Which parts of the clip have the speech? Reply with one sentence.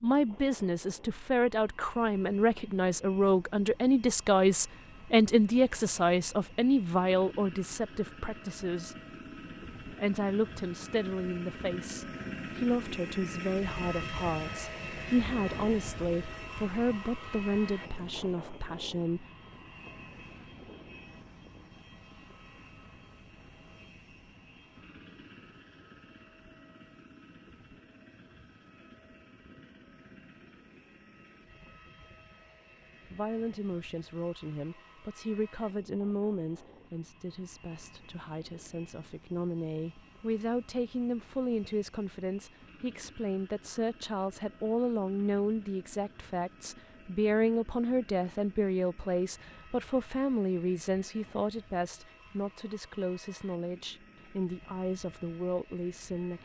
The speech can be heard from 0.0 to 8.9 s, from 9.8 to 19.2 s and from 33.1 to 56.4 s.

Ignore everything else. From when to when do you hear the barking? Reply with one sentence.
You can't hear the barking here.